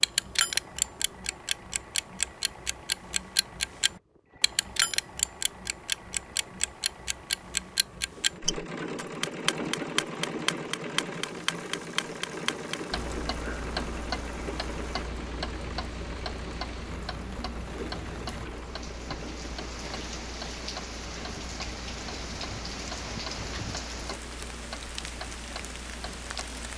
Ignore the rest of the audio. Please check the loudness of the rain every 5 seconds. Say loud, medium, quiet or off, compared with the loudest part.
off, off, medium, medium, loud, loud.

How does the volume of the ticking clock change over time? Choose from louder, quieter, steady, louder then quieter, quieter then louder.
quieter.